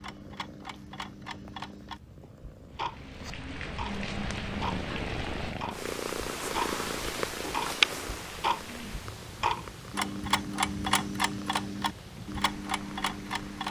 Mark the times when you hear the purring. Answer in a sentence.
The purring can be heard from 0.0 to 13.6 s.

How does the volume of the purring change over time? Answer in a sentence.
The volume of the purring goes up, then down.